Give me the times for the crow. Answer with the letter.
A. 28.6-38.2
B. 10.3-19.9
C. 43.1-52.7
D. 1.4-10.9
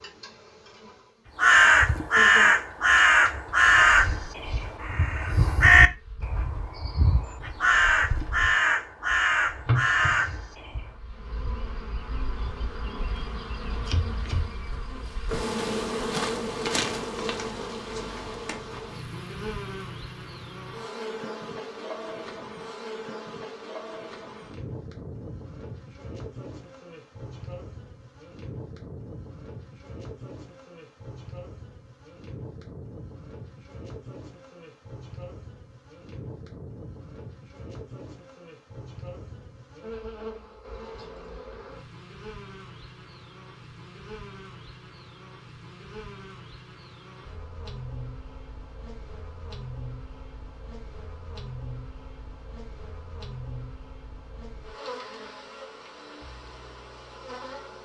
D.